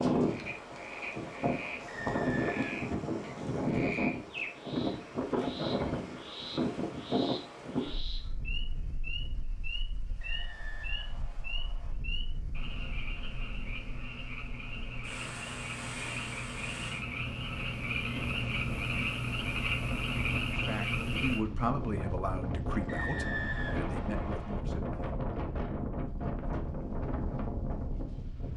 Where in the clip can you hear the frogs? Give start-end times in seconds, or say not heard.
0.0-21.4.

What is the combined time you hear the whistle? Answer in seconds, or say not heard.
5 s.